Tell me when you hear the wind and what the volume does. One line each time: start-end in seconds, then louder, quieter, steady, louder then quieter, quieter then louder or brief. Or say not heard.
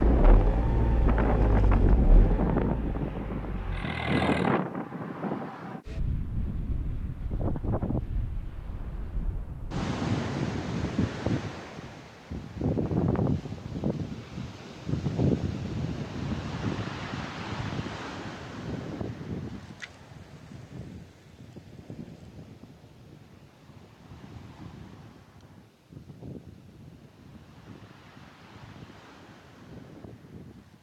0.0-30.7 quieter.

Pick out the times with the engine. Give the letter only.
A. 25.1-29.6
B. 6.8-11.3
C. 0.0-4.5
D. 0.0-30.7
C.